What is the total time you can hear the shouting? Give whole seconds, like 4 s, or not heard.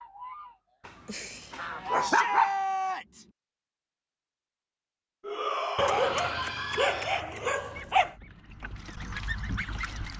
3 s.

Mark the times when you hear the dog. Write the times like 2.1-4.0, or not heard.
0.8-2.6, 5.8-8.2.